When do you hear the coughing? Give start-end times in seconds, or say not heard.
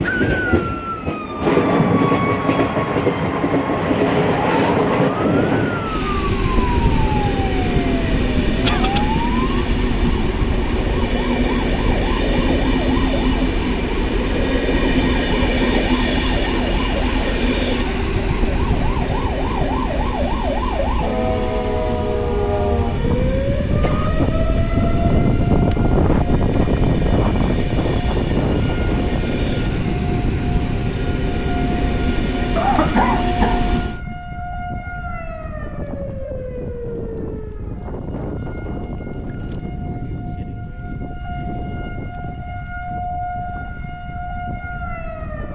8.6-9.1, 23.8-24.6, 32.5-34.1.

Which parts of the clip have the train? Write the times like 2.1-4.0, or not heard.
0.0-34.0.